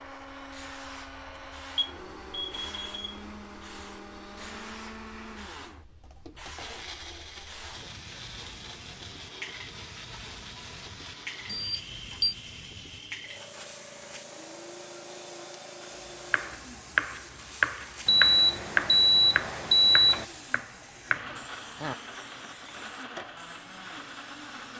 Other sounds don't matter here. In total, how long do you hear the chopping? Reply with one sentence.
You can hear the chopping for 6 seconds altogether.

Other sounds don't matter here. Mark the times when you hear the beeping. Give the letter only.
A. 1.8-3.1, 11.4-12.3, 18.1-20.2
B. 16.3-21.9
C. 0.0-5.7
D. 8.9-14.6
A.